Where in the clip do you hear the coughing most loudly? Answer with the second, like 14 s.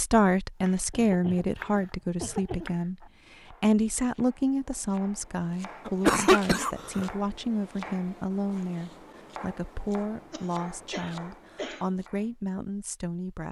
6 s.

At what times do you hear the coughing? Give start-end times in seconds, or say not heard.
0.9-2.8, 5.8-7.1, 10.3-11.9.